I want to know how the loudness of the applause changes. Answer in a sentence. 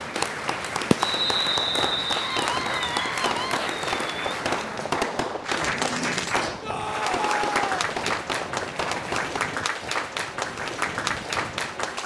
The volume of the applause stays about the same.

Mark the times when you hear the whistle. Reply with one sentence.
You can hear the whistle from 1.0 to 2.4 s.